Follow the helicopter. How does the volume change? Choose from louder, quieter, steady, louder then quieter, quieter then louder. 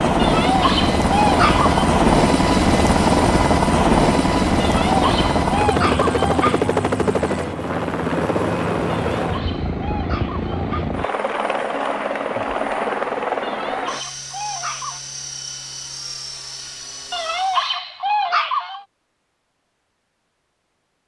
quieter.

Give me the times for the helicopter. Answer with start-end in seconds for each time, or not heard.
0.0-17.8.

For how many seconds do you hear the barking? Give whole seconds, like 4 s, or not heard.
9 s.